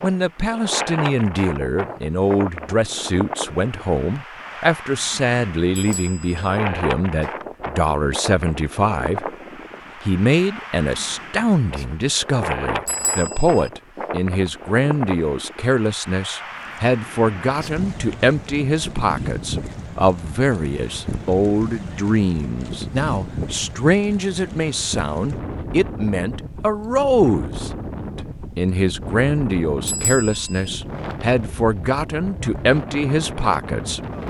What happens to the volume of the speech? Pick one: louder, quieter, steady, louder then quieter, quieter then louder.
steady.